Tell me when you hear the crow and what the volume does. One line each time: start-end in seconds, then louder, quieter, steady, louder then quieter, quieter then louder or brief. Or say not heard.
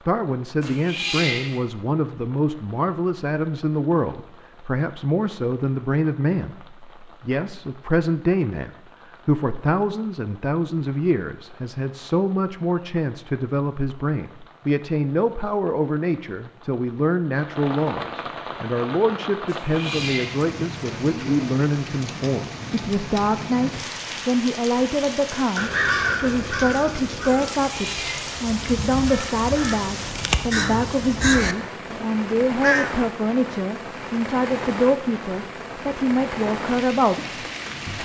25.6-33.0 quieter then louder.